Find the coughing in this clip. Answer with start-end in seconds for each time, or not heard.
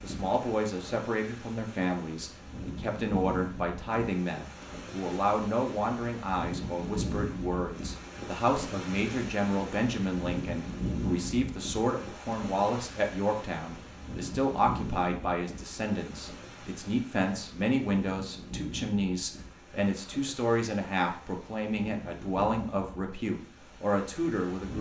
not heard.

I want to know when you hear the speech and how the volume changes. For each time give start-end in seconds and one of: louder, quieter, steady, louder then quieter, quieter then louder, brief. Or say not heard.
0.0-24.7 steady.